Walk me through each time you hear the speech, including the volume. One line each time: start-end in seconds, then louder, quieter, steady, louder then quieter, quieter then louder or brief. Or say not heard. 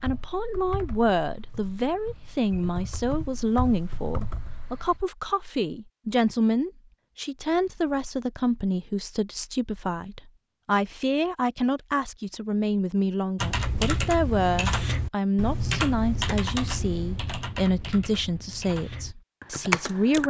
0.0-20.2 steady.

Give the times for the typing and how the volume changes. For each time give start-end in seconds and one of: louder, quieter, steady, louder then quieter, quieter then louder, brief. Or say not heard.
0.0-5.0 quieter then louder
13.3-20.2 quieter then louder.